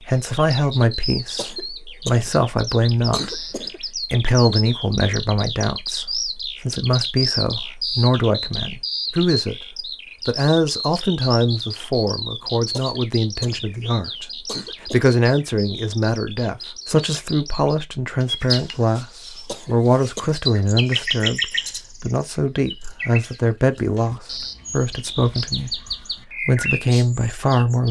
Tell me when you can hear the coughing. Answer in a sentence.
The coughing can be heard from 1.4 to 2.4 s, from 3.1 to 3.8 s, from 12.7 to 13.7 s, from 14.4 to 15.0 s and from 19.4 to 20.4 s.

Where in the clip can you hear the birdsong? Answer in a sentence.
The birdsong can be heard from 0.0 to 27.8 s.